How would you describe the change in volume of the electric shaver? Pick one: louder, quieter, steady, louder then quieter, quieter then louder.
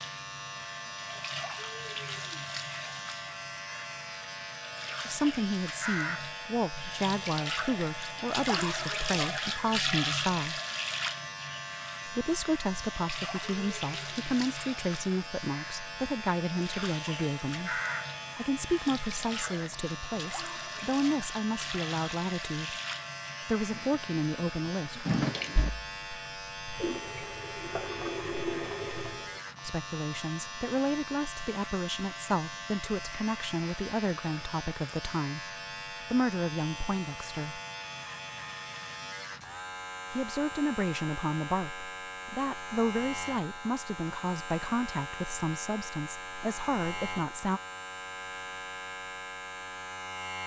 steady.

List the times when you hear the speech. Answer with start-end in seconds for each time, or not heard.
5.0-10.6, 12.1-22.8, 23.4-25.1, 29.6-37.6, 40.1-47.6.